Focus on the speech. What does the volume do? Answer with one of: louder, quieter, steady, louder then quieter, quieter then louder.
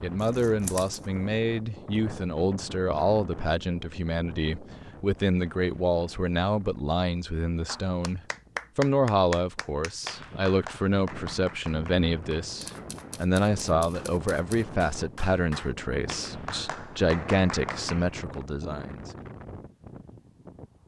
steady.